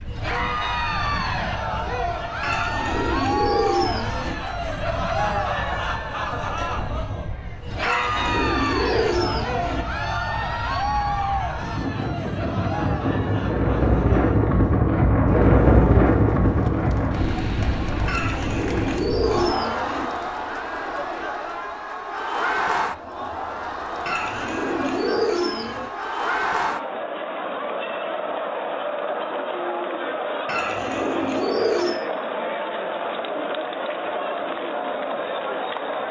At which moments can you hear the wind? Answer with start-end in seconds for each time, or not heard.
0.0-19.6.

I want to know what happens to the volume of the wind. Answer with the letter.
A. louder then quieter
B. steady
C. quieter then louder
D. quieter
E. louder
E.